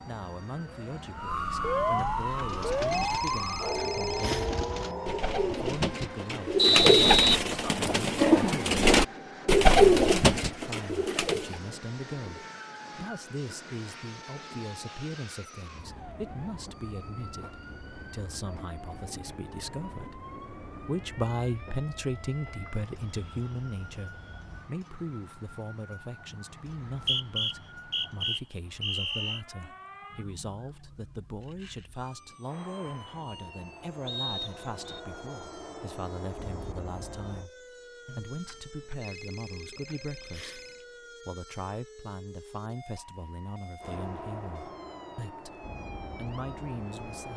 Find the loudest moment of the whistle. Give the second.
7 s.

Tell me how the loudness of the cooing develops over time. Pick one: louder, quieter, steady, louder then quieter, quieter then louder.
louder.